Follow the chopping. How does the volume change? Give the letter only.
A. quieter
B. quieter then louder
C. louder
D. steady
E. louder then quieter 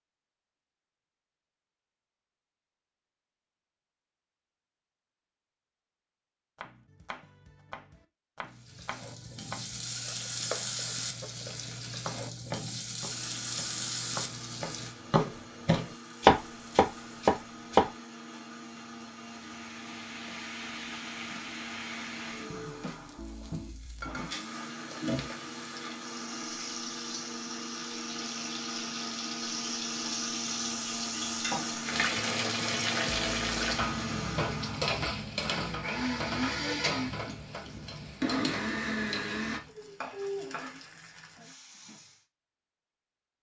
C.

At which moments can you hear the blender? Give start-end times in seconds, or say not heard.
13.1-39.6.